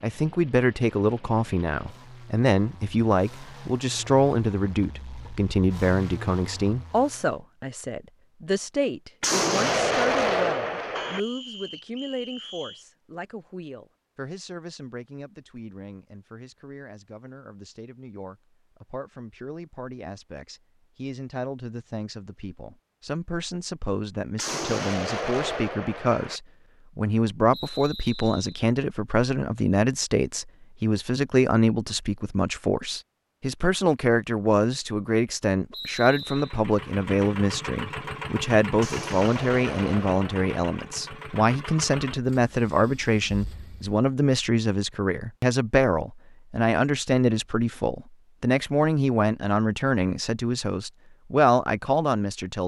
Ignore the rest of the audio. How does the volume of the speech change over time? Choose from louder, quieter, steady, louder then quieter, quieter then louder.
quieter then louder.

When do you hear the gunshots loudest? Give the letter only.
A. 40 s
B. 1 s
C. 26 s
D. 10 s
D.